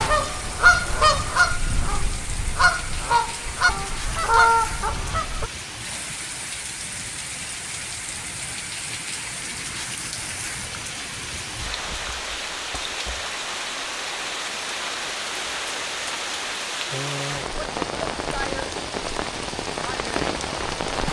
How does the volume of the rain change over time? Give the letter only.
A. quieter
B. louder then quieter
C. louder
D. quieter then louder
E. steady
C.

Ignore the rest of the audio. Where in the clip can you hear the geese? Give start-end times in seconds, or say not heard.
0.0-5.5.